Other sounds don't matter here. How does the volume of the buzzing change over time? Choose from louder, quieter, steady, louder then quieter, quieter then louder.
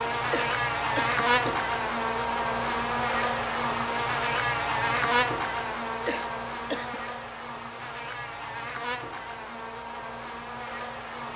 quieter.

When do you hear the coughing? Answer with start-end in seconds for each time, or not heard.
0.3-1.6, 6.0-7.0.